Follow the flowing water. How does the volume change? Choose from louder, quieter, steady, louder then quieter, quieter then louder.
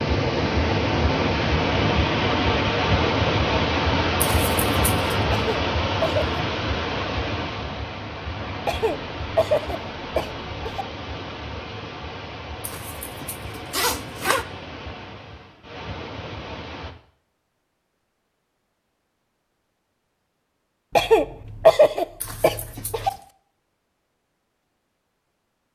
quieter.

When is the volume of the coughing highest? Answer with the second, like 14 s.
22 s.